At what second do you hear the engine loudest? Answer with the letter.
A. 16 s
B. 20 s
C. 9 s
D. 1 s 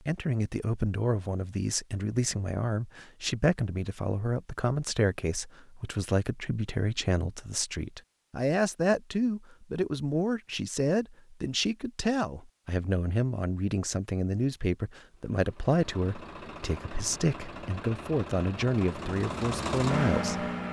B.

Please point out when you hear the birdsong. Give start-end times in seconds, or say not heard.
not heard.